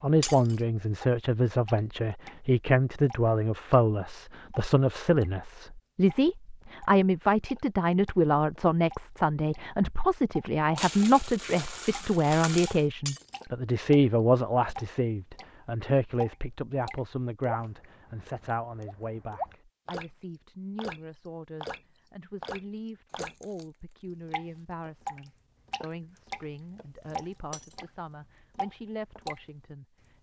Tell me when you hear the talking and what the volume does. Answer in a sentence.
You can hear the talking from 0.0 to 30.1 s, getting quieter.